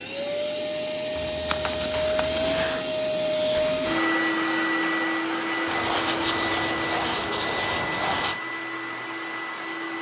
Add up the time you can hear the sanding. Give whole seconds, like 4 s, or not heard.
4 s.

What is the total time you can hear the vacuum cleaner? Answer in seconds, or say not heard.
10 s.